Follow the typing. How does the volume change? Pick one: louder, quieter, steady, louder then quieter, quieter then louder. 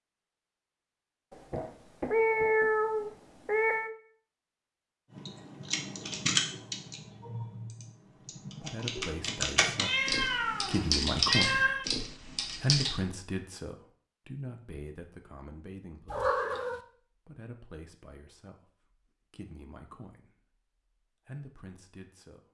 quieter then louder.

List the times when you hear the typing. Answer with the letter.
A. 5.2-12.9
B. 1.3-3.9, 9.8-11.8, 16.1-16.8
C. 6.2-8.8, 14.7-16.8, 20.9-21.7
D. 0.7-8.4
A.